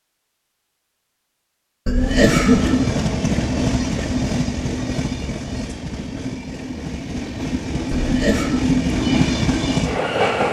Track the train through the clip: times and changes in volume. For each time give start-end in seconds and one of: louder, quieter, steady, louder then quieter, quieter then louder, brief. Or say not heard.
1.9-10.4 quieter then louder.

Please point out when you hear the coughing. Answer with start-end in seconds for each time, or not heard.
1.9-2.8, 7.9-8.5.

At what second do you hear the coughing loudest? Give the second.
2 s.